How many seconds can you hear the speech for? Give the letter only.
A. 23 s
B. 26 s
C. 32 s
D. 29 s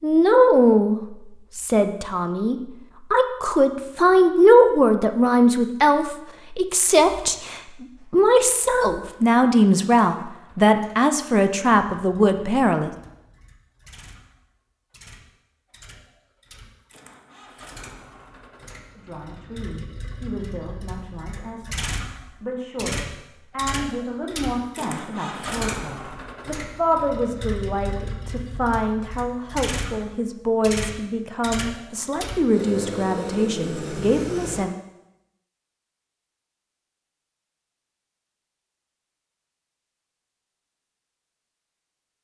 D.